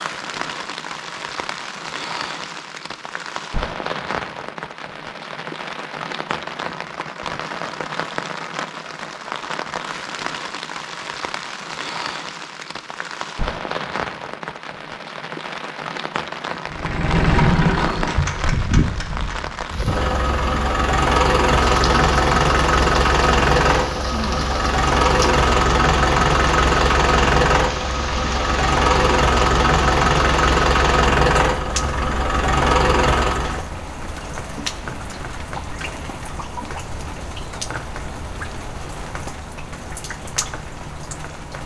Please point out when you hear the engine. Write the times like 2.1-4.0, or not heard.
16.6-33.6.